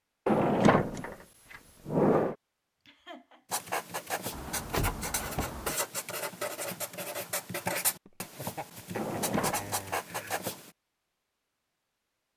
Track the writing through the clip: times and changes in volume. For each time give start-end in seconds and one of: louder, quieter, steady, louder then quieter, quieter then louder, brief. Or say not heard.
3.5-10.7 steady.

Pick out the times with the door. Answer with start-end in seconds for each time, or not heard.
0.2-2.4, 4.3-5.8, 8.9-9.8.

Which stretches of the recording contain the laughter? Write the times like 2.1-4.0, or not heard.
2.9-3.6, 8.1-10.4.